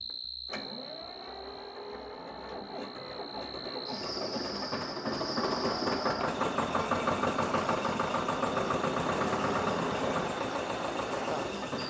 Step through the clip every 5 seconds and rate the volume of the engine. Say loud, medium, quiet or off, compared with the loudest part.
medium, loud, loud.